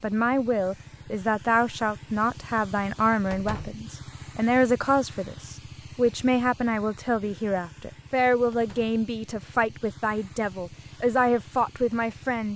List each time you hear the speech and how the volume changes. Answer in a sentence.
You can hear the speech from 0.0 to 12.5 s, at a steady volume.